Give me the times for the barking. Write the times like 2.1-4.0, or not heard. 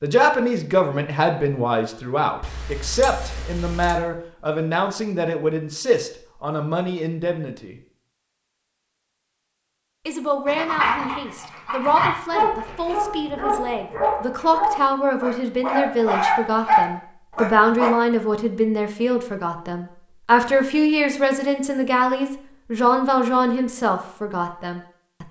10.4-17.9.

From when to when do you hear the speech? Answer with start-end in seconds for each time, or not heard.
0.0-7.8, 10.1-25.2.